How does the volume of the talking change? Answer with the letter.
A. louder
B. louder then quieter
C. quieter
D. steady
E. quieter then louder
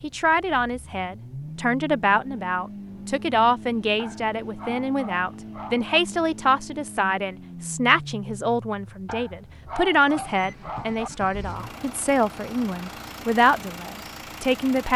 D.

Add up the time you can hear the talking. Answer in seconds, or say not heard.
15 s.